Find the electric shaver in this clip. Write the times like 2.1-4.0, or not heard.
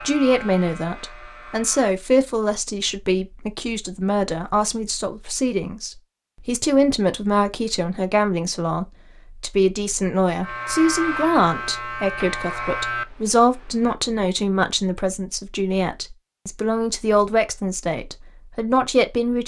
0.0-1.9, 10.4-13.9.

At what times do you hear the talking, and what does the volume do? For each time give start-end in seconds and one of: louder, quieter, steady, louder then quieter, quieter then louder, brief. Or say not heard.
0.0-19.4 steady.